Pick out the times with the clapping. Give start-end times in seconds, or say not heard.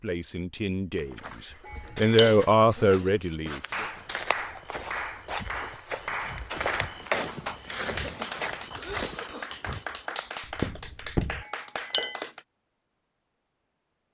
3.7-12.4.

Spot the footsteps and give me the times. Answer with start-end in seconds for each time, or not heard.
0.9-11.4.